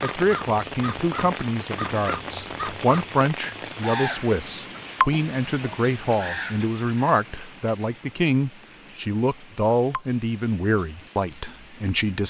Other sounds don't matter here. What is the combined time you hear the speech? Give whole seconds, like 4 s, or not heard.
12 s.